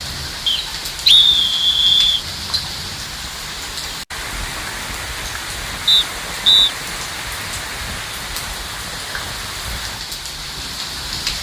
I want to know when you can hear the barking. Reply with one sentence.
You can't hear the barking here.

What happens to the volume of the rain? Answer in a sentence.
The loudness of the rain stays about the same.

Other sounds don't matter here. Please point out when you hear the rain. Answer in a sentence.
The rain can be heard from 0.0 to 11.3 s.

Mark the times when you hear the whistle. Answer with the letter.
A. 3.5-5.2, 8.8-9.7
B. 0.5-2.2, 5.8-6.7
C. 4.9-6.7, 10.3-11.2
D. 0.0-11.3
B.